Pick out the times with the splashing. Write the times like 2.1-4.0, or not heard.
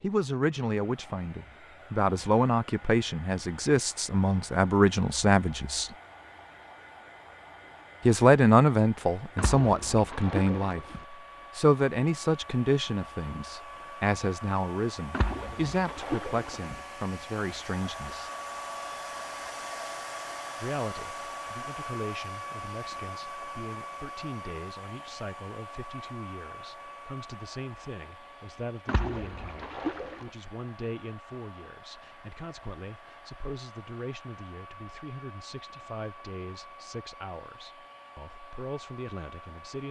9.3-11.1, 15.1-16.8, 28.9-30.3.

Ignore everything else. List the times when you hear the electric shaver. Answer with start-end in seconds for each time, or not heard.
not heard.